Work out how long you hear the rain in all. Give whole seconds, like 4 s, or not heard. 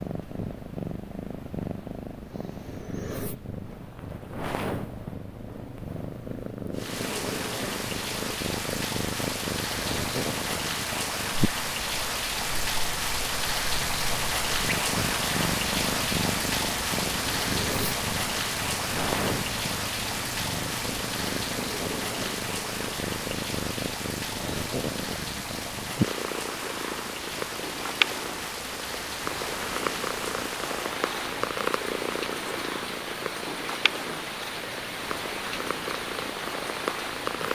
31 s.